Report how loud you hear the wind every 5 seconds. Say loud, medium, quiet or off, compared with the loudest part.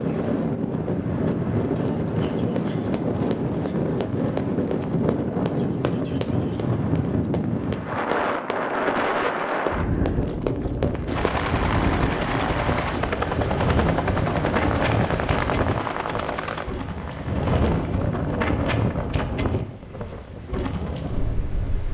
loud, loud, loud, loud, medium.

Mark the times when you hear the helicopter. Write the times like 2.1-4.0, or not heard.
11.1-19.2.